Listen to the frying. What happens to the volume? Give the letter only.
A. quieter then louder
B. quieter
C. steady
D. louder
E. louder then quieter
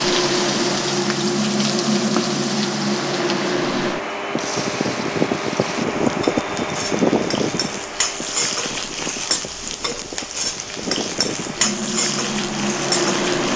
A.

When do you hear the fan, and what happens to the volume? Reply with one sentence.
You can hear the fan from 0.0 to 13.5 s, getting quieter then louder.